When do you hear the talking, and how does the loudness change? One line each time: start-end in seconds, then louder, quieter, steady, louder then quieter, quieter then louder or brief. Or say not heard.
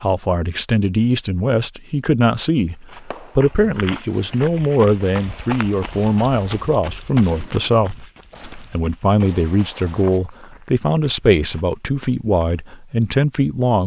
0.0-13.8 steady.